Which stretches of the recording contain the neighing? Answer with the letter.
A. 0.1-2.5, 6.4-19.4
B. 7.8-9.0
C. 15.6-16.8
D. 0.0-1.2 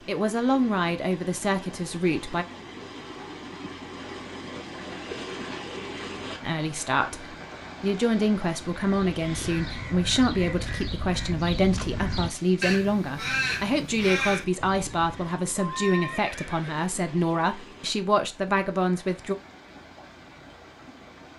C.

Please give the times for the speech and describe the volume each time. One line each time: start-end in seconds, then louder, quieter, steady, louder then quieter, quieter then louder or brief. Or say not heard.
0.1-2.5 brief
6.4-19.4 steady.